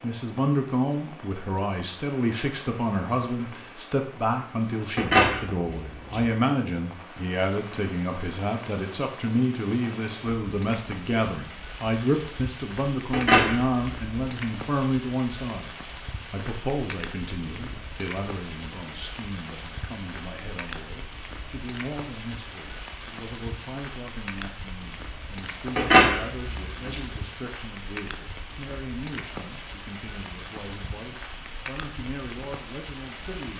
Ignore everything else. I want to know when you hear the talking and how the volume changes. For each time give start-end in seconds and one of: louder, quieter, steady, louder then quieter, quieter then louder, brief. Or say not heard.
0.0-33.5 quieter.